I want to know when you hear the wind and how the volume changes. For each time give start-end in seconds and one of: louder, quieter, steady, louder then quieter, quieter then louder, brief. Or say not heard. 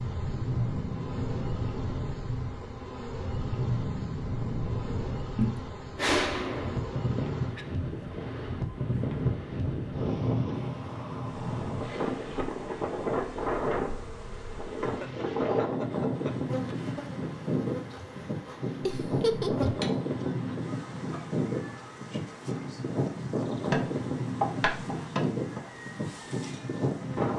0.0-27.3 steady.